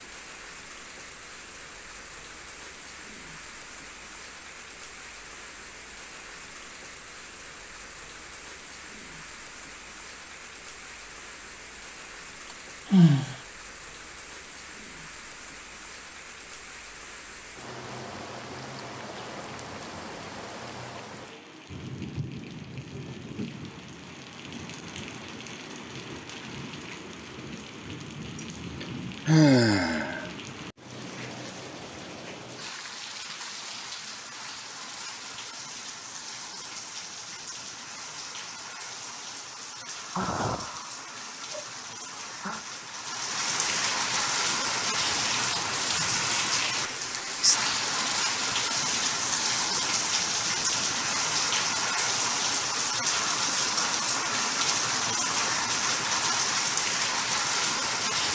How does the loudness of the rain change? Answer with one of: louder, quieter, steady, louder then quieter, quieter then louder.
louder.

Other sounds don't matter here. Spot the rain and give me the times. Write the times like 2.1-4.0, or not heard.
0.0-58.3.